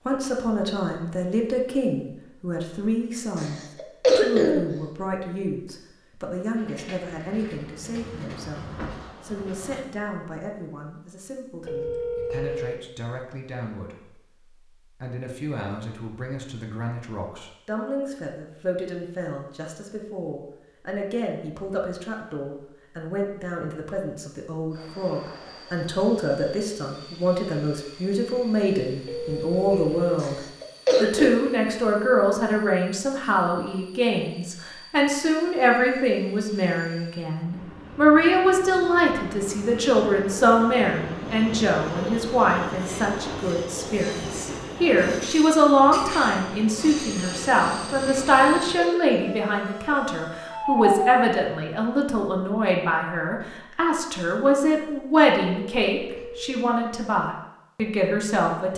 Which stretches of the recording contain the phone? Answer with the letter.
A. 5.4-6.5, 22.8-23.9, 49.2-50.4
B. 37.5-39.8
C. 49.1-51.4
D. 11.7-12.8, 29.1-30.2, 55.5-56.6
D.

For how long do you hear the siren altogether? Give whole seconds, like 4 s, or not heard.
2 s.